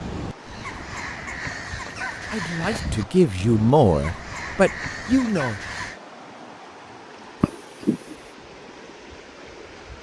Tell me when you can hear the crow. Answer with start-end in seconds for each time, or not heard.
0.0-6.0.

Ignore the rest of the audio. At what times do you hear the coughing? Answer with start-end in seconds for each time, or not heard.
7.4-8.2.